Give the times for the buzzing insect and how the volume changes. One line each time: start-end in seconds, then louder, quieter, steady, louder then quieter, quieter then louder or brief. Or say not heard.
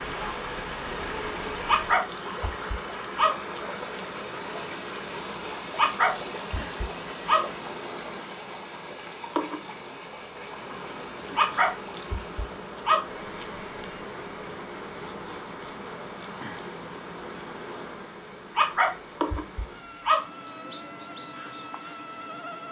0.0-22.6 steady.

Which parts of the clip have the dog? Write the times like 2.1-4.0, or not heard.
1.6-3.4, 5.8-7.5, 11.3-13.0, 18.6-20.2.